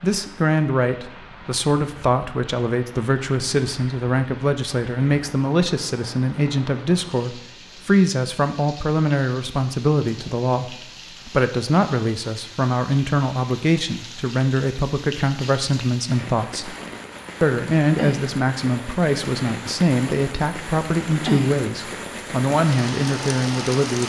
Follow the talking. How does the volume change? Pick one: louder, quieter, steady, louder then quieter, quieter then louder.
steady.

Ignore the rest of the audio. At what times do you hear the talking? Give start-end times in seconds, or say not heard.
0.0-16.8, 17.4-24.0.